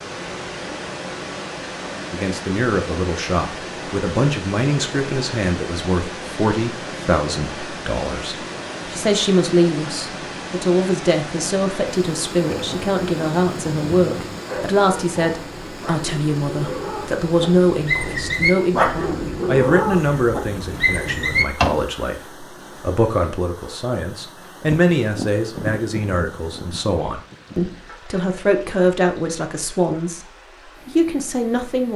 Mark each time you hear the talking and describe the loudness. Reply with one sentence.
You can hear the talking from 2.1 to 30.2 s, at a steady volume; and briefly from 30.9 to 31.9 s.